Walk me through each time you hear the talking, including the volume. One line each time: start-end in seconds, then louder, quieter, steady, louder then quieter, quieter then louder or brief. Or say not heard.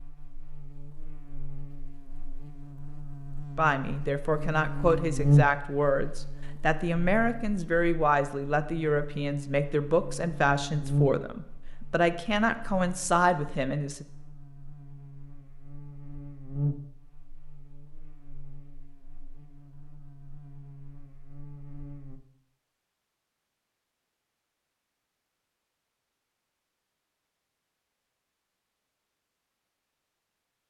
3.5-14.1 steady.